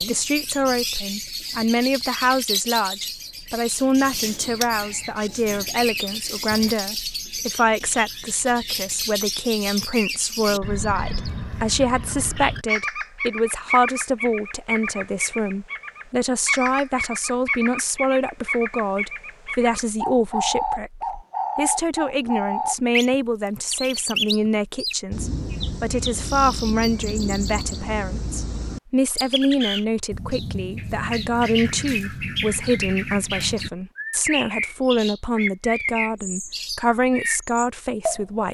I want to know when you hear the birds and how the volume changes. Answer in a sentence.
The birds can be heard from 0.0 to 38.4 s, at a steady volume.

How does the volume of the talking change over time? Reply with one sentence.
The loudness of the talking stays about the same.